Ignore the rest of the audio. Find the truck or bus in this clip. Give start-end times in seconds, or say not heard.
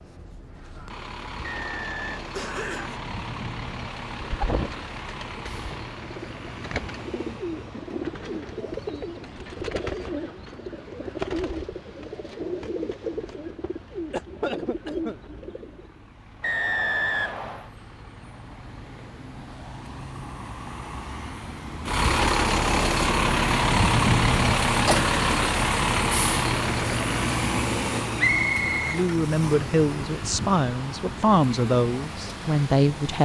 0.0-33.2.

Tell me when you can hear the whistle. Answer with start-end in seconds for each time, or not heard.
1.4-2.2, 16.4-17.7, 28.1-29.8.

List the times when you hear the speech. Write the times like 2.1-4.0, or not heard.
28.8-33.2.